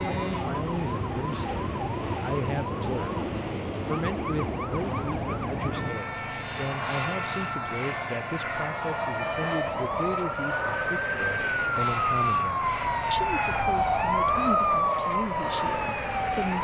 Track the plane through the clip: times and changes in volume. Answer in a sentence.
The plane can be heard from 0.0 to 16.5 s, at a steady volume.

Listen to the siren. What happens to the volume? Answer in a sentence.
The volume of the siren goes up.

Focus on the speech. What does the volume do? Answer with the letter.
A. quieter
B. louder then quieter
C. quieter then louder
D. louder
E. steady
E.